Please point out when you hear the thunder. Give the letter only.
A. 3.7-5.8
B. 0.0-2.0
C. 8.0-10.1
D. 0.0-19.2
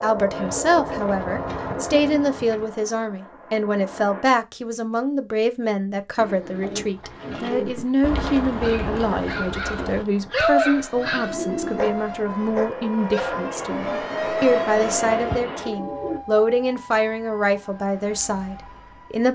C.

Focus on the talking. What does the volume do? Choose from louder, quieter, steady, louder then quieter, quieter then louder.
steady.